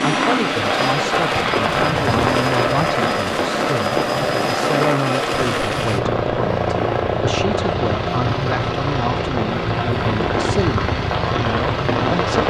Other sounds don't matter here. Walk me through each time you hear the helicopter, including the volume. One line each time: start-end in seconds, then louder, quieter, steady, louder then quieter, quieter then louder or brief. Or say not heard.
0.0-12.4 steady.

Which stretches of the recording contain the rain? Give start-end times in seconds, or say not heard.
0.0-12.4.